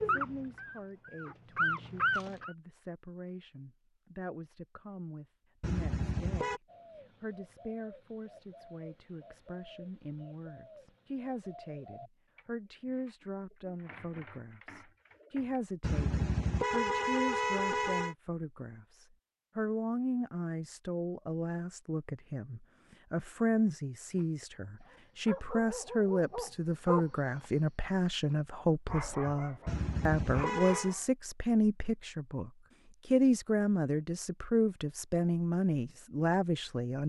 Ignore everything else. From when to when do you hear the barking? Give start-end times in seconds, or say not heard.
0.0-2.5, 24.1-31.1.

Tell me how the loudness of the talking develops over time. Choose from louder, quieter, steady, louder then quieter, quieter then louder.
louder.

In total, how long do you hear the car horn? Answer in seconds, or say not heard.
5 s.